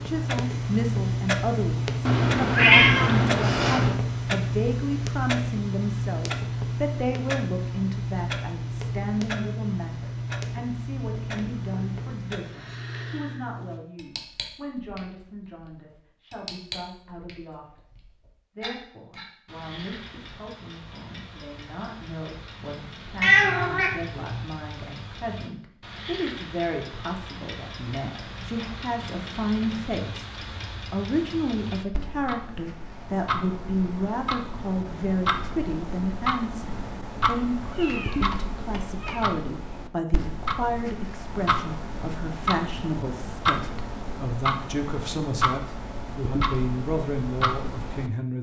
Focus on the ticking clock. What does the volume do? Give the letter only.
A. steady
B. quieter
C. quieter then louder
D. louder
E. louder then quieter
C.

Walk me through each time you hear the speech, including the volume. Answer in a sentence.
You can hear the speech from 0.1 to 17.8 s, getting quieter; and from 18.6 to 48.3 s, getting louder.